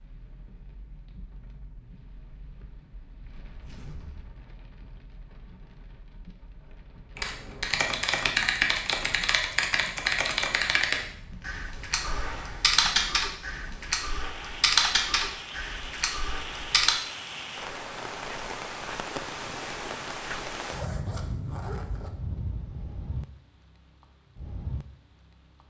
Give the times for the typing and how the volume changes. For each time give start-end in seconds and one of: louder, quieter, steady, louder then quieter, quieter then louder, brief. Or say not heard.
7.2-16.9 steady.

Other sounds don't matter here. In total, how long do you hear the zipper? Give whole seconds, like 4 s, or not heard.
4 s.